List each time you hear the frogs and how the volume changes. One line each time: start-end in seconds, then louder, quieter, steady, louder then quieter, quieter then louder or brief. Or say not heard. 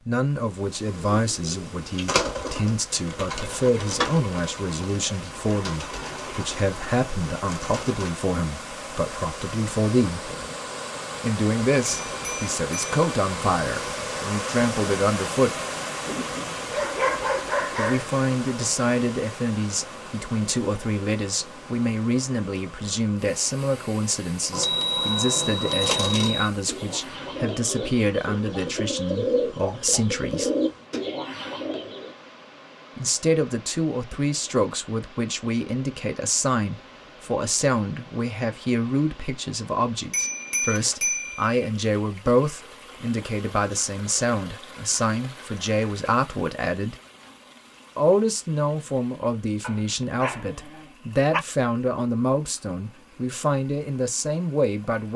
not heard.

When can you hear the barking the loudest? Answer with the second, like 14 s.
17 s.